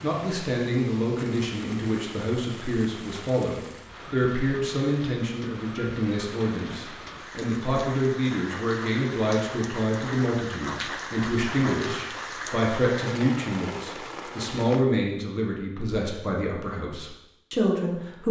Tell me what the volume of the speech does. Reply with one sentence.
The loudness of the speech stays about the same.